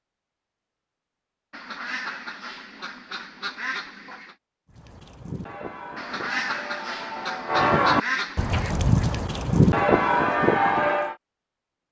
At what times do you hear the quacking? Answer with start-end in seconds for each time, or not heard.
1.5-4.3, 6.0-8.8.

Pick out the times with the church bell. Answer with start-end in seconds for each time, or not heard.
4.7-11.2.